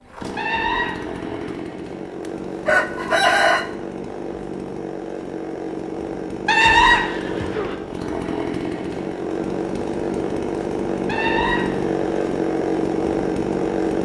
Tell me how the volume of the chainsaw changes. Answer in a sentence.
The loudness of the chainsaw goes up.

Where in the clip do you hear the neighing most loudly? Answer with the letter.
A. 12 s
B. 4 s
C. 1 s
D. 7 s
D.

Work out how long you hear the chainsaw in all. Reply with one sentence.
You can hear the chainsaw for 14 seconds altogether.